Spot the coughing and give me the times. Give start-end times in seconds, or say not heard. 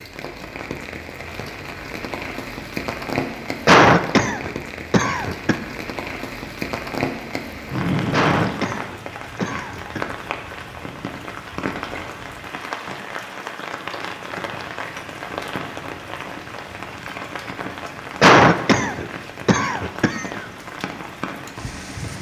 3.6-5.5, 8.1-10.0, 18.2-20.2.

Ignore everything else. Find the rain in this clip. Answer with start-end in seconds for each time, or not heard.
0.0-22.1.